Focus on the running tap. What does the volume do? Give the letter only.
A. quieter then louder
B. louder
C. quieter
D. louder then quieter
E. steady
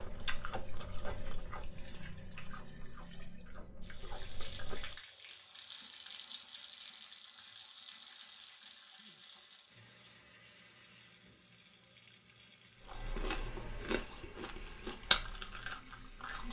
D.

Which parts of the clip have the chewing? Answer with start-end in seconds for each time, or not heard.
0.0-5.0, 12.8-16.4.